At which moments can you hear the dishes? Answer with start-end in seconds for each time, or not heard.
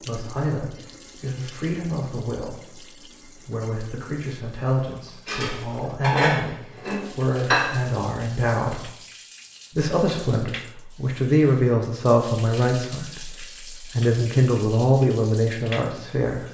5.2-7.9.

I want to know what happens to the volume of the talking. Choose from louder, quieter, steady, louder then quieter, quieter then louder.
louder.